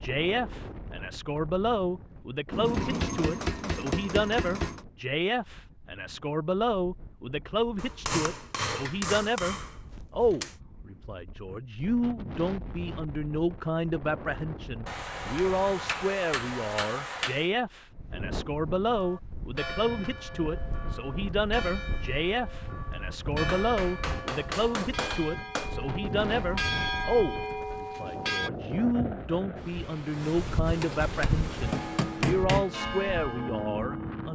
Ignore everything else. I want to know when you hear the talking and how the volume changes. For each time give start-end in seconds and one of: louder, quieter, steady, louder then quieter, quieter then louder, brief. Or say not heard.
0.0-34.3 steady.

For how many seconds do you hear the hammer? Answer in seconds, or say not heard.
12 s.